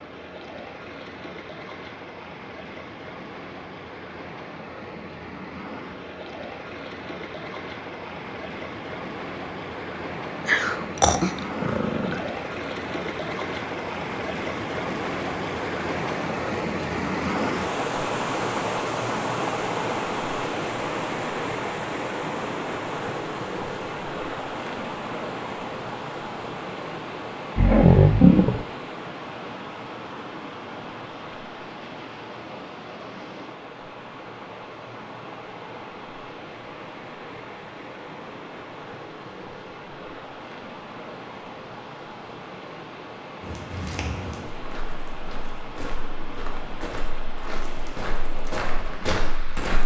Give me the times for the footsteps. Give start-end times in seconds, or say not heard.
43.4-49.8.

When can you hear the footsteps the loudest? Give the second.
49 s.